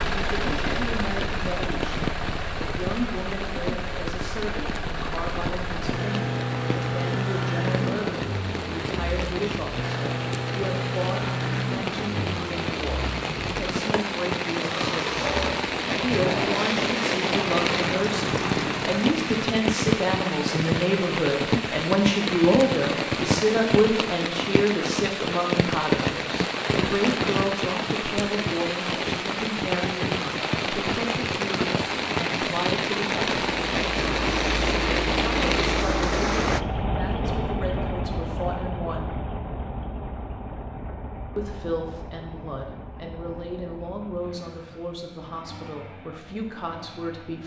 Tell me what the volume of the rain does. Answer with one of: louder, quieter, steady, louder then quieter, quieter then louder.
louder.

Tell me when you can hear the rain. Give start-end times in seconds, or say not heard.
0.0-36.6.